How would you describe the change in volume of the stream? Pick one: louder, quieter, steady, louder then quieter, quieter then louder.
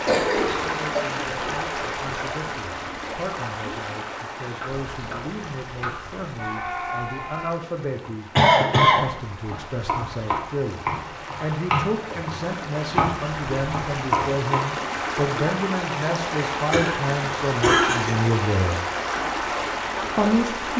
quieter then louder.